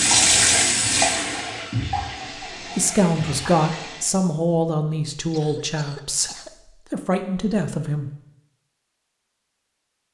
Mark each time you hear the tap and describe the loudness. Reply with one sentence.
You can hear the tap from 0.0 to 4.1 s, getting quieter.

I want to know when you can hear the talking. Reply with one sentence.
The talking can be heard from 2.8 to 6.3 s and from 6.9 to 8.1 s.